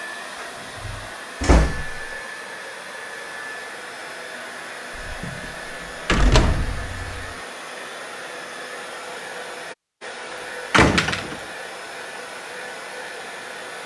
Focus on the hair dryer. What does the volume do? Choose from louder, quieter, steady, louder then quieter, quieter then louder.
steady.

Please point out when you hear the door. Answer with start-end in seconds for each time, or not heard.
0.4-2.1, 5.0-7.3, 10.7-11.3.